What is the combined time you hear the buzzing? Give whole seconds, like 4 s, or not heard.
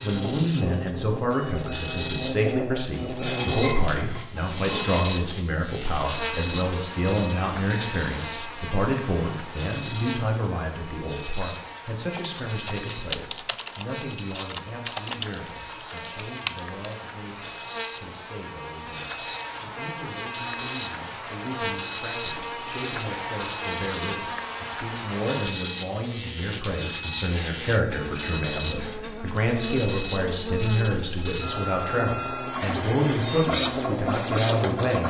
35 s.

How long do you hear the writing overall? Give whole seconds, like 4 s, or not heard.
not heard.